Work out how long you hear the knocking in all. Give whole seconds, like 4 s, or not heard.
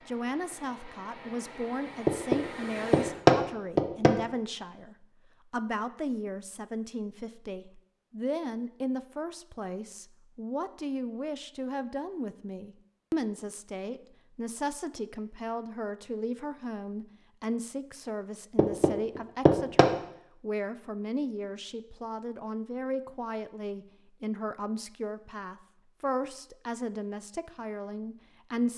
3 s.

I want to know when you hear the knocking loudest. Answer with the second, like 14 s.
3 s.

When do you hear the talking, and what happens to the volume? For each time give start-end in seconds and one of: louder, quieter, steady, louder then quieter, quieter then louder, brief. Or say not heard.
0.1-28.7 steady.